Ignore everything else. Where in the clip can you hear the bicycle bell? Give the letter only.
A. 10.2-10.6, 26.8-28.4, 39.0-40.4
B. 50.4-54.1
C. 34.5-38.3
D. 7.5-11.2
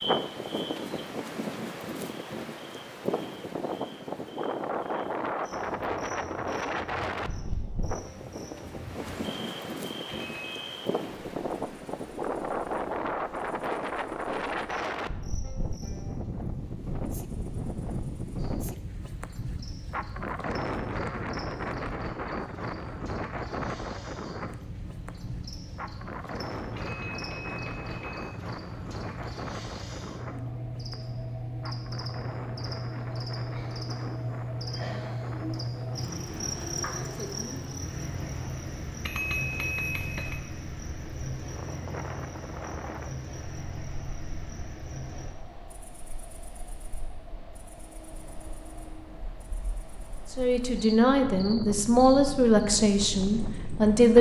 A.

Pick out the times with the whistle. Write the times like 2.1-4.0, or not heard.
not heard.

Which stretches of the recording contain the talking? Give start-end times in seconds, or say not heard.
50.4-54.1.